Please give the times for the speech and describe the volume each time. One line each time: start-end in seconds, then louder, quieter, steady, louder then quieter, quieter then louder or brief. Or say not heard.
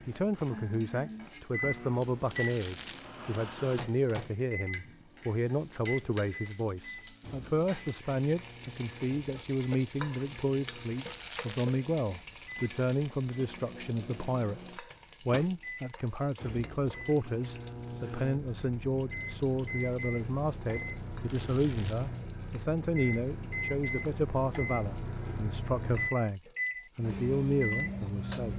0.1-28.5 steady.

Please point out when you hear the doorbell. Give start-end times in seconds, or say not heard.
not heard.